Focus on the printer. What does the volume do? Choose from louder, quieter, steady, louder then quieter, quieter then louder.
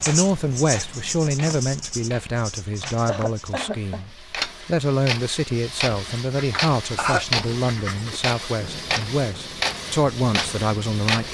louder.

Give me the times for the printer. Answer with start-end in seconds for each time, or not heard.
0.0-11.2.